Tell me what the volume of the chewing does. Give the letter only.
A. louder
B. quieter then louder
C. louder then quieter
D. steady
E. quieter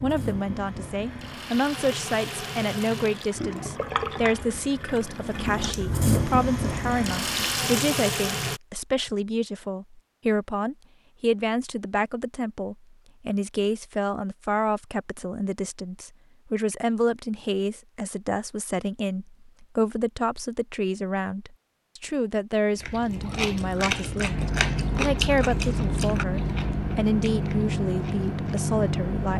E.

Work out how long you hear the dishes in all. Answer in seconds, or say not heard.
not heard.